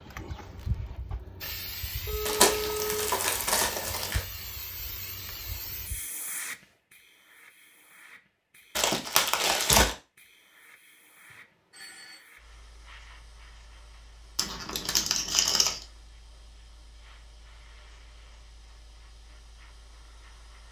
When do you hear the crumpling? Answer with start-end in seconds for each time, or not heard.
2.2-4.2, 8.8-9.9, 14.3-15.8.